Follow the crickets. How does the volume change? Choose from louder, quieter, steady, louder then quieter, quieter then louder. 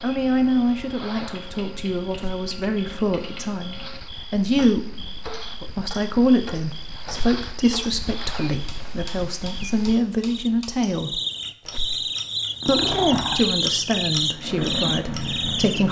louder.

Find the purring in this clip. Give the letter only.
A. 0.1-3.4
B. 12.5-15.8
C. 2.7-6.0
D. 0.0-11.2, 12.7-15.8
B.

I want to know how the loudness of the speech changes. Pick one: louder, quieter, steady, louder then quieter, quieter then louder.
steady.